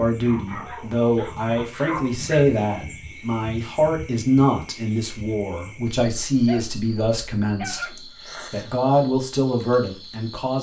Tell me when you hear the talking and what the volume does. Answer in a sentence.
You can hear the talking from 0.0 to 10.5 s, at a steady volume.